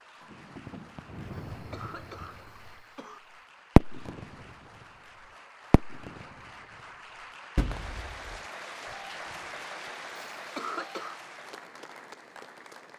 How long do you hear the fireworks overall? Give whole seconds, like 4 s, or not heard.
6 s.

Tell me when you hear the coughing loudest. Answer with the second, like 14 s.
11 s.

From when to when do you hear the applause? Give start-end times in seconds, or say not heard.
0.0-12.9.